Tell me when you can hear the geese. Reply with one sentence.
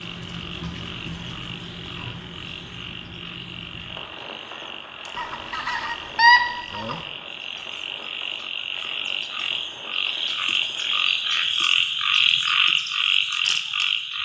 You can hear the geese from 5.2 to 7.0 s.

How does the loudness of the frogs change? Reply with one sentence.
The volume of the frogs goes up.